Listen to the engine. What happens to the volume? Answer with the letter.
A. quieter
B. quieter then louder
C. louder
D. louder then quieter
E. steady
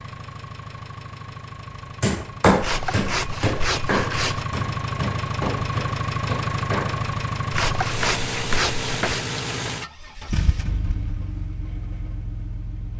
D.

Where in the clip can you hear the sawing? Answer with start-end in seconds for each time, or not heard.
2.6-4.5, 7.5-9.2.